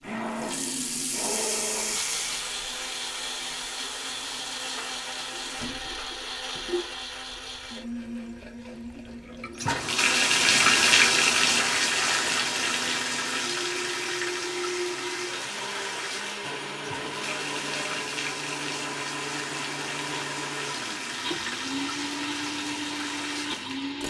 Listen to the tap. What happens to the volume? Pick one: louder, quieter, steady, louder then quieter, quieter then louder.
louder then quieter.